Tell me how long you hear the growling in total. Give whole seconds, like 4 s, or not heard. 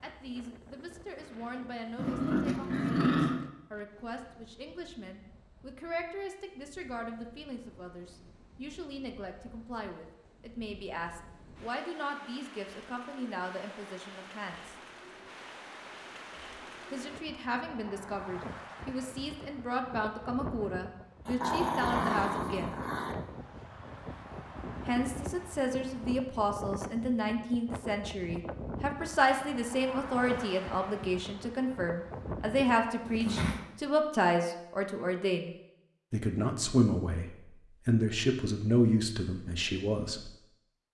4 s.